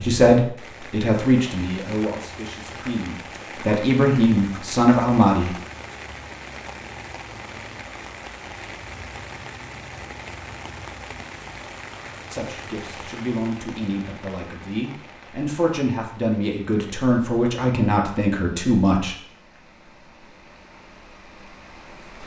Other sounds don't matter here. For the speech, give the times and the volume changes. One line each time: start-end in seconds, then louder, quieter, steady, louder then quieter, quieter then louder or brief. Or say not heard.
0.0-5.5 quieter then louder
12.3-19.1 louder.